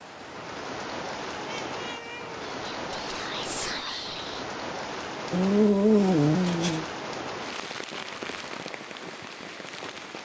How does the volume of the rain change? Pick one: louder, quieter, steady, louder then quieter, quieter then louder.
steady.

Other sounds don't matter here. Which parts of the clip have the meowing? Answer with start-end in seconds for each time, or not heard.
1.4-2.4, 5.3-6.8.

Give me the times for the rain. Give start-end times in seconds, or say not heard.
0.0-10.2.